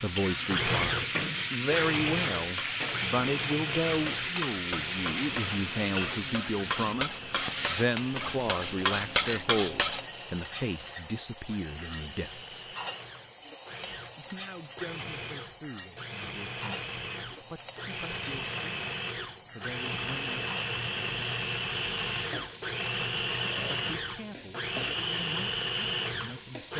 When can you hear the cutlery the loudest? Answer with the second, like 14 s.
9 s.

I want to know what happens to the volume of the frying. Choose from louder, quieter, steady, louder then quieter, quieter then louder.
quieter.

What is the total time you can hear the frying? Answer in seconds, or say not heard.
27 s.